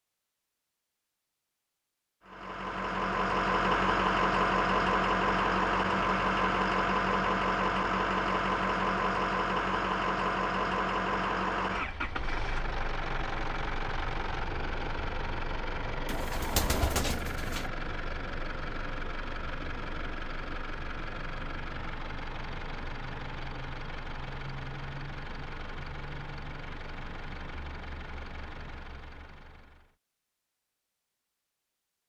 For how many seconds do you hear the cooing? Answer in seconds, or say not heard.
2 s.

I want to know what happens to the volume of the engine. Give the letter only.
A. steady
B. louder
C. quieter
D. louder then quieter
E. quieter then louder
C.